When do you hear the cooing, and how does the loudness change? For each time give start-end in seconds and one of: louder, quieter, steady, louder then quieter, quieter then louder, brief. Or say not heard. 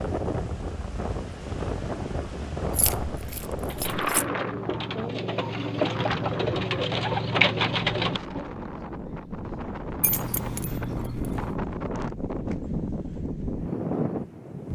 3.6-8.6 louder.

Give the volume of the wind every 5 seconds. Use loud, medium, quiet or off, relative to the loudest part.
loud, medium, loud.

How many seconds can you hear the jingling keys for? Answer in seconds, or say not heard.
3 s.